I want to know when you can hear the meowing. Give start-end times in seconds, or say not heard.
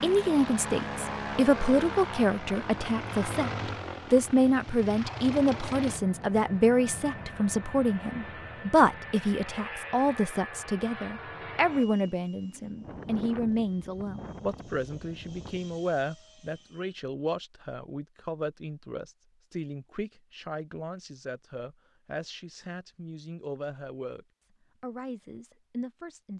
not heard.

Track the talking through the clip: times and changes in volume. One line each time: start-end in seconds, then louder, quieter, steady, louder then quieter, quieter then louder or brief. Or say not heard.
0.0-26.3 quieter.